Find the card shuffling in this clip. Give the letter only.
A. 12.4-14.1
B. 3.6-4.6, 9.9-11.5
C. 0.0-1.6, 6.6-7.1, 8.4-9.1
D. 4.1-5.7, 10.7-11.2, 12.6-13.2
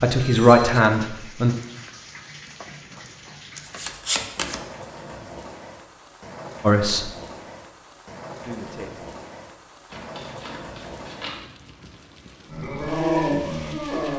B.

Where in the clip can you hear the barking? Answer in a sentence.
The barking can be heard from 12.4 to 14.1 s.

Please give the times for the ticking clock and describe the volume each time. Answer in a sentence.
The ticking clock can't be heard in this clip.